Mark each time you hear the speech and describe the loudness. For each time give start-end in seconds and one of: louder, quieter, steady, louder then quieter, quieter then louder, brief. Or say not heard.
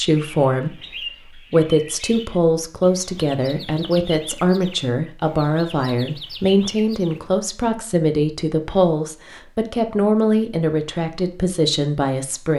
0.0-12.5 steady.